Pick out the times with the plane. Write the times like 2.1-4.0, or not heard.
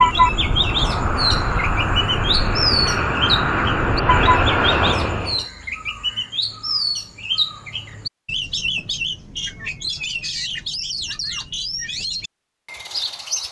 0.0-5.5.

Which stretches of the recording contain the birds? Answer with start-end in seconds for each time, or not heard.
0.0-13.4.